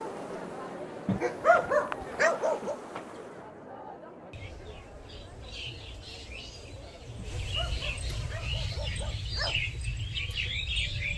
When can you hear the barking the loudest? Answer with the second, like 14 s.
2 s.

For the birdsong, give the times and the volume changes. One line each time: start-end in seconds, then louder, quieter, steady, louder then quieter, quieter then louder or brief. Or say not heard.
3.9-11.1 louder.